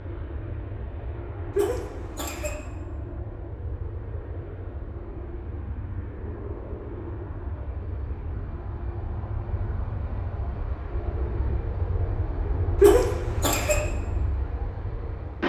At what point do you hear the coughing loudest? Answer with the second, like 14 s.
13 s.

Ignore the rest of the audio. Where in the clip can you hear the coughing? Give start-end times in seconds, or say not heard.
1.6-2.6, 12.8-13.8.